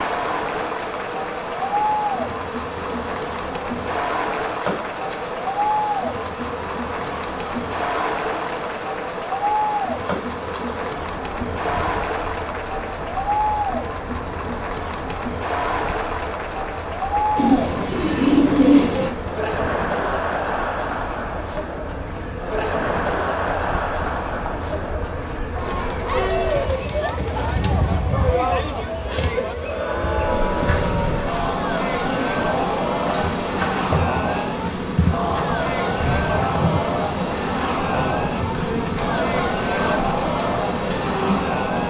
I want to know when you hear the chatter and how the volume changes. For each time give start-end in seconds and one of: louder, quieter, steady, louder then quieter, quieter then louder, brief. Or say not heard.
0.0-41.8 steady.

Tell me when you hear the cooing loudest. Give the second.
19 s.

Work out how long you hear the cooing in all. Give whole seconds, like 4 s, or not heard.
2 s.